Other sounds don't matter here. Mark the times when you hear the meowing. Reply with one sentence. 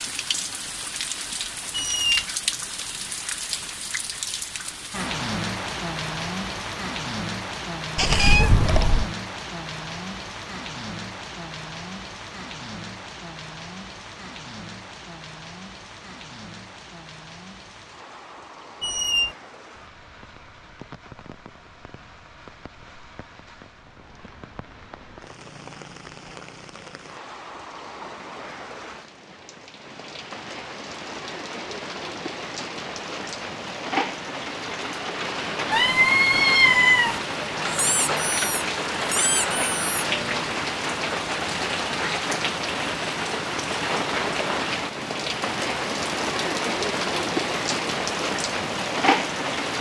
The meowing can be heard from 8.0 to 9.1 s and from 35.7 to 37.2 s.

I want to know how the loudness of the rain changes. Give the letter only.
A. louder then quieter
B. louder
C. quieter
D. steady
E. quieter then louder
E.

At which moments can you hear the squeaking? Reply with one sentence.
You can hear the squeaking from 1.7 to 2.2 s, from 18.8 to 19.4 s and from 37.6 to 40.0 s.